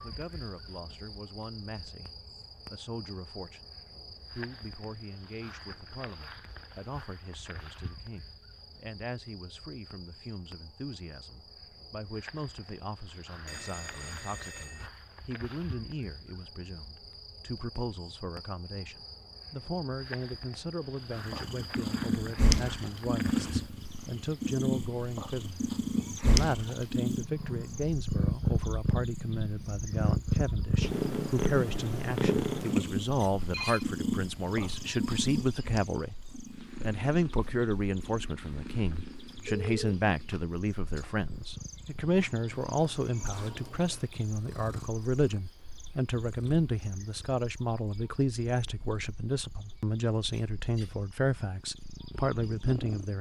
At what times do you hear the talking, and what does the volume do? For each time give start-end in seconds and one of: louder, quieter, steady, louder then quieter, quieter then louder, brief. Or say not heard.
0.0-53.1 louder.